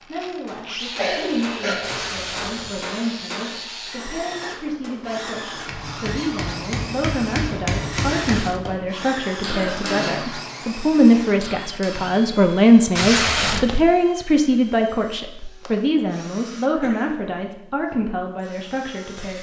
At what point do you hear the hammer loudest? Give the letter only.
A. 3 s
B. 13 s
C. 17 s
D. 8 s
D.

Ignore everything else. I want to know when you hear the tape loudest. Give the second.
13 s.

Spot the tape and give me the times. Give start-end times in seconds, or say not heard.
1.8-3.0, 7.9-8.7, 12.9-13.8.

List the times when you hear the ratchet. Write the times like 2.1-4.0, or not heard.
not heard.